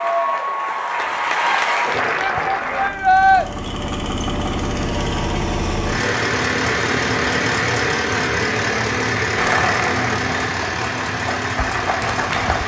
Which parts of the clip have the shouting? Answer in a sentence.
You can hear the shouting from 2.1 to 3.5 s.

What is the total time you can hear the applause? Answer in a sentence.
The applause can be heard for 6 seconds in total.